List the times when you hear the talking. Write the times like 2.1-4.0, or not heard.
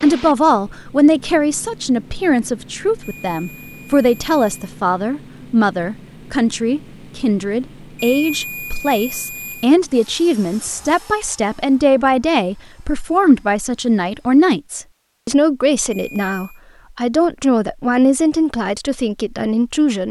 0.0-20.0.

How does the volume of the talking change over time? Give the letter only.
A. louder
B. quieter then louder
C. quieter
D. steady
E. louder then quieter
D.